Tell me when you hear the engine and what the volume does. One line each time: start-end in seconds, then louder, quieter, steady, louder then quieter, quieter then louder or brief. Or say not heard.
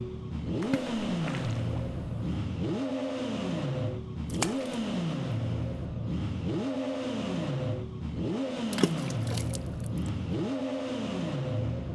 0.0-11.9 steady.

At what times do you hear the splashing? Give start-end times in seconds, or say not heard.
0.6-2.4, 4.3-4.8, 8.7-10.1.